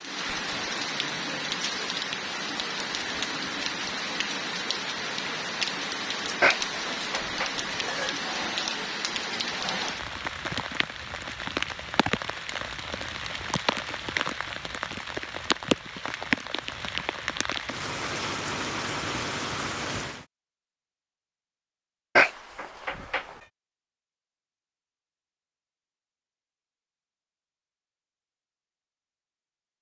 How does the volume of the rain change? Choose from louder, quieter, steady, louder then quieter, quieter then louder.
steady.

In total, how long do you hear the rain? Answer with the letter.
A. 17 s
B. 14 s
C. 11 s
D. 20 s
D.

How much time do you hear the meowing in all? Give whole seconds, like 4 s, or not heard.
3 s.